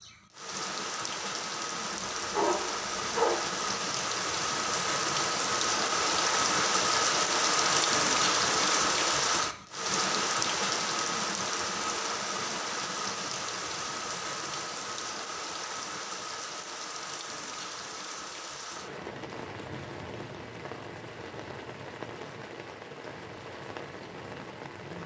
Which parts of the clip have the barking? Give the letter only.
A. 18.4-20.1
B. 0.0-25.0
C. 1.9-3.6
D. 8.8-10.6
C.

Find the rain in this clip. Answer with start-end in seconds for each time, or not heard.
0.0-25.0.